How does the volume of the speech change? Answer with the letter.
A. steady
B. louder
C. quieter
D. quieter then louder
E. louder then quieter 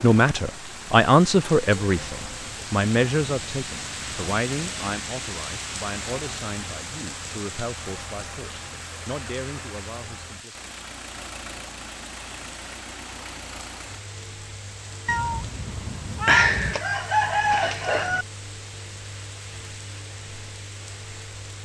C.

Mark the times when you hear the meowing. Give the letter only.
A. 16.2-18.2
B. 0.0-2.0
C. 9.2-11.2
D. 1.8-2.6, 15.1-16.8
D.